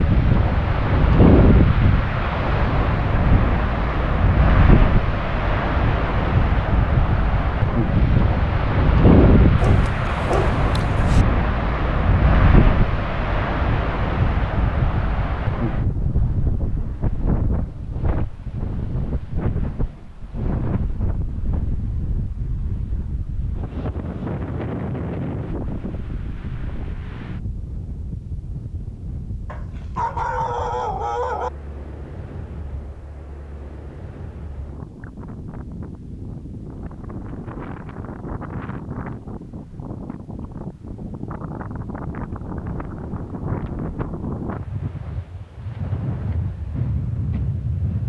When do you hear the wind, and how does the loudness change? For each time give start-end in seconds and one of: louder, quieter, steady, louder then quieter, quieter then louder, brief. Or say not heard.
0.0-48.0 quieter then louder.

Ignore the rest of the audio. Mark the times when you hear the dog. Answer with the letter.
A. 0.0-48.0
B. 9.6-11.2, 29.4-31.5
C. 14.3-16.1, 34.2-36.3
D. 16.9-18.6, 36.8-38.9
B.